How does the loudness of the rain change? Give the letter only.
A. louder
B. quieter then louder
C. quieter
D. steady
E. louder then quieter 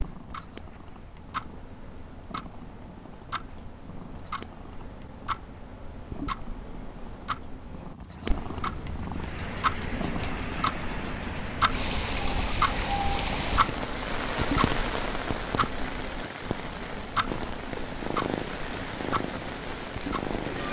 E.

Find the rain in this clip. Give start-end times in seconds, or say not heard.
9.1-20.6.